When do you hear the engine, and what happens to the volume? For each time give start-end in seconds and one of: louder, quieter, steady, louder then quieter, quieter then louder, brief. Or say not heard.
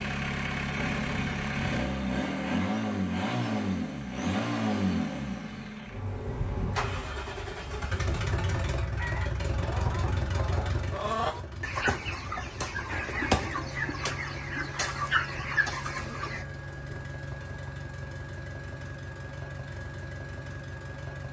0.0-21.2 quieter.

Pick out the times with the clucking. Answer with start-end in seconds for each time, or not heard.
8.9-16.4.